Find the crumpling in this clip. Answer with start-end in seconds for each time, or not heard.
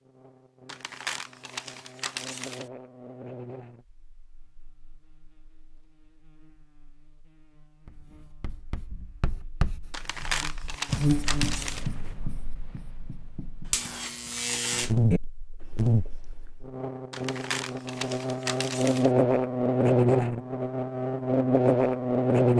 0.7-2.6, 9.9-11.9, 17.1-19.1.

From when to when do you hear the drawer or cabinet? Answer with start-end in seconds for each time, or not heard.
not heard.